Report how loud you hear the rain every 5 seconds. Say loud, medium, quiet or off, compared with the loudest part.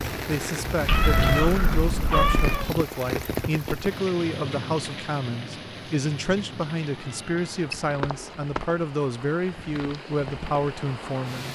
loud, medium, medium.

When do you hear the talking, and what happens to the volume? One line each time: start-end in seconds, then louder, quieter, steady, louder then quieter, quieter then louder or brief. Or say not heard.
0.2-11.5 steady.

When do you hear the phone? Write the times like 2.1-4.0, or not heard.
7.7-8.7.